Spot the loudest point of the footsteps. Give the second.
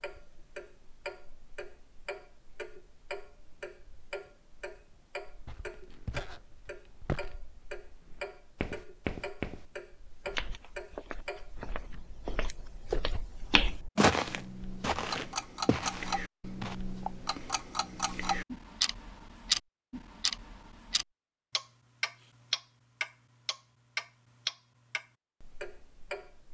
14 s.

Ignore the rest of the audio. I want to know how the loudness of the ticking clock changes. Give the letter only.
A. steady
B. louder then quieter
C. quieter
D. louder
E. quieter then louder
D.